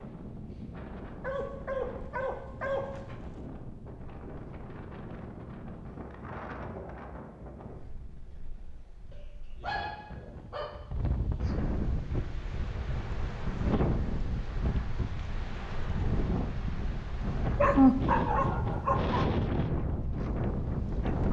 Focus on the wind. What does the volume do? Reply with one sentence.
The loudness of the wind goes up.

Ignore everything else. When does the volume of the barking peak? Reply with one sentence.
The volume of the barking peaks at 18 seconds.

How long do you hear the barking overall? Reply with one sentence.
You can hear the barking for 5 seconds altogether.